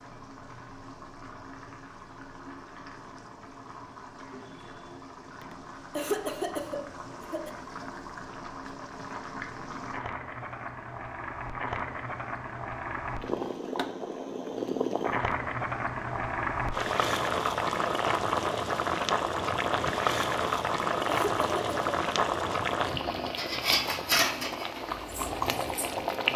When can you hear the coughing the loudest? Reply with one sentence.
The loudest moment of the coughing is at 6 seconds.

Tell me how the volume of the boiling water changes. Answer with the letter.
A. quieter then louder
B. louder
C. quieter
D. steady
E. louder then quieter
B.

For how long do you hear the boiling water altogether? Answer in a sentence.
You can hear the boiling water for 26 seconds altogether.